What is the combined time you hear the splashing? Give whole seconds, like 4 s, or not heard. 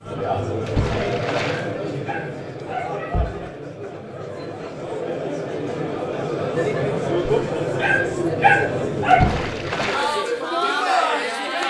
2 s.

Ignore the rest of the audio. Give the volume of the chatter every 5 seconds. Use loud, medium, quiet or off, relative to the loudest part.
medium, loud, loud.